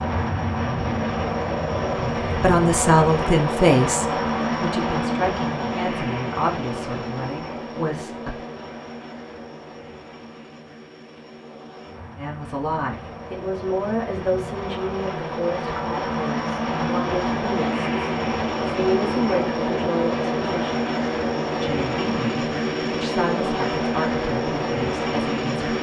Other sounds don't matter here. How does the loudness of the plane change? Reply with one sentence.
The volume of the plane goes down, then up.